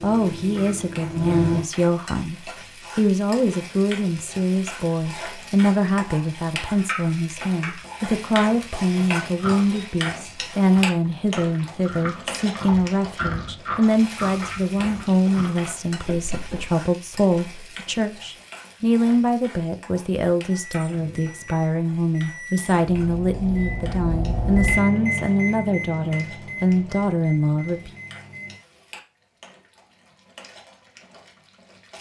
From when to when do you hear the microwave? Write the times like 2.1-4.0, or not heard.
0.0-1.6, 20.4-28.6.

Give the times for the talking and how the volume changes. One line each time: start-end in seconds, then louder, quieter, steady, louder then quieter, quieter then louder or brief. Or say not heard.
0.0-27.9 steady.